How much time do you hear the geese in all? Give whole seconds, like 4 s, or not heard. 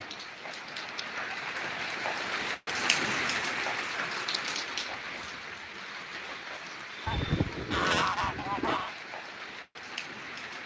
2 s.